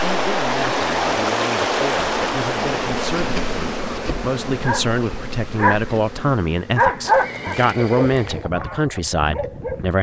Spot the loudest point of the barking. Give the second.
7 s.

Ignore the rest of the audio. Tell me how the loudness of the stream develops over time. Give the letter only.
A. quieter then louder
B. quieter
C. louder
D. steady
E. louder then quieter
B.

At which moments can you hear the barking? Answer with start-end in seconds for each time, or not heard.
4.5-9.9.